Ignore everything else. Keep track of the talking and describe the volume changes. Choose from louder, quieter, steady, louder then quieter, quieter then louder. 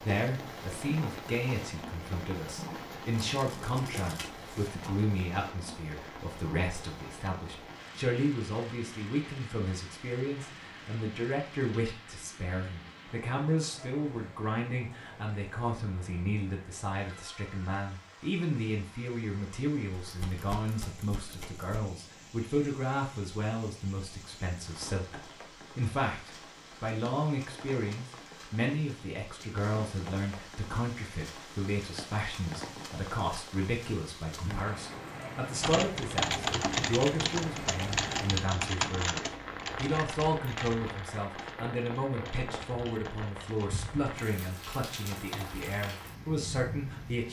steady.